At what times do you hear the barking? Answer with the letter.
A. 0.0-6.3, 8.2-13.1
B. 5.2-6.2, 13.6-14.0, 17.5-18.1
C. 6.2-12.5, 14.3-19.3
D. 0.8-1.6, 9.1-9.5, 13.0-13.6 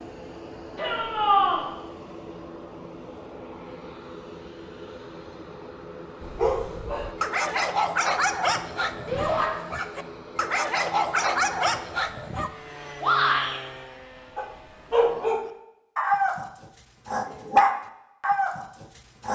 C.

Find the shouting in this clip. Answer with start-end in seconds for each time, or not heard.
0.8-1.6, 9.1-9.5, 13.0-13.6.